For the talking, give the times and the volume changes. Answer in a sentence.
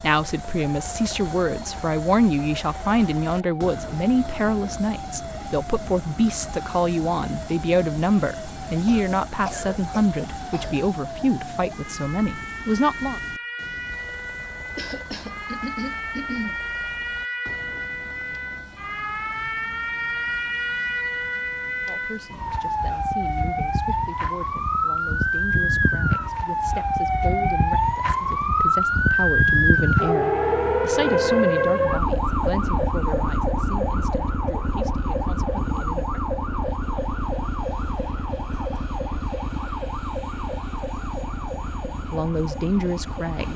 You can hear the talking from 0.0 to 13.2 s, at a steady volume; from 21.9 to 36.2 s, getting louder then quieter; and briefly from 42.0 to 43.5 s.